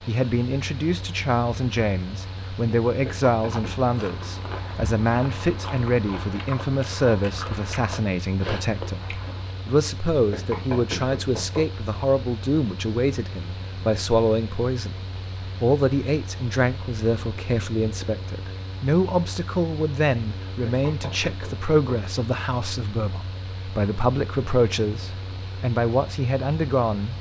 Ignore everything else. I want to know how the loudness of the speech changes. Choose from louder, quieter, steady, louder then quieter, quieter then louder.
steady.